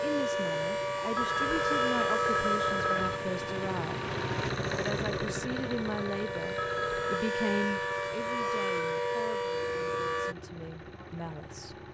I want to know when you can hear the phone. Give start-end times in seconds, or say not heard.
1.1-3.2, 6.5-7.2.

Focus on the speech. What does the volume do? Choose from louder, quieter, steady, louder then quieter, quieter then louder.
quieter.